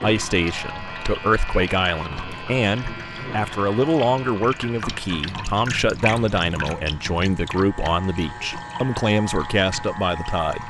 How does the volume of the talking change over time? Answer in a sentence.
The loudness of the talking stays about the same.